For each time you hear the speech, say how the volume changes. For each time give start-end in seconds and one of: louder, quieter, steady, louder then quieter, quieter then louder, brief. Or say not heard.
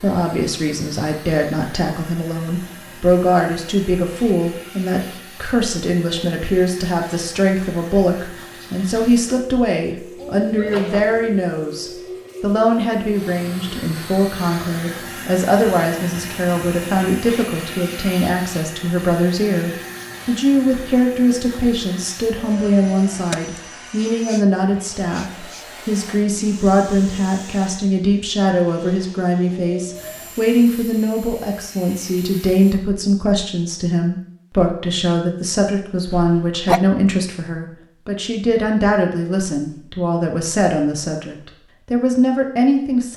0.0-43.1 steady.